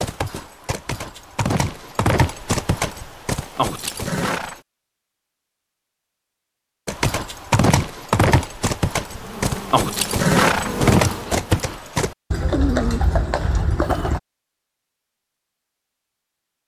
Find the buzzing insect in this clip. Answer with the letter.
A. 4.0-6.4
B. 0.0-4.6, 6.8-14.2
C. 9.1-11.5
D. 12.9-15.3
C.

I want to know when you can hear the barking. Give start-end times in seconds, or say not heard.
not heard.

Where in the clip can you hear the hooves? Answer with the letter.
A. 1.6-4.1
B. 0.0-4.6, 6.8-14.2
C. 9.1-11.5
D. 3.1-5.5
B.